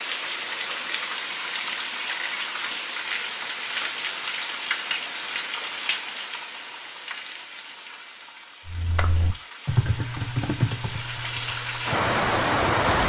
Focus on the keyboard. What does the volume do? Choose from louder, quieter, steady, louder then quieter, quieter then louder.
quieter then louder.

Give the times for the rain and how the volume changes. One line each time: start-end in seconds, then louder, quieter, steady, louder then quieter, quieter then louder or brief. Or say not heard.
0.0-13.0 quieter then louder.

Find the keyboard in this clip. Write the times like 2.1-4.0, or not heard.
8.7-13.0.